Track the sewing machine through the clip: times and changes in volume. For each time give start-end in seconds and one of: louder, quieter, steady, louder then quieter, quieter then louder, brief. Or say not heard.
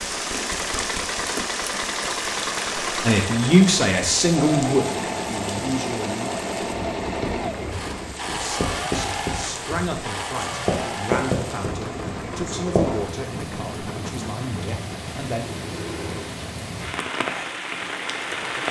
0.0-18.6 quieter.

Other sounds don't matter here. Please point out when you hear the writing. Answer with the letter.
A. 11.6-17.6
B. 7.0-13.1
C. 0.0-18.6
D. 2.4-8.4
B.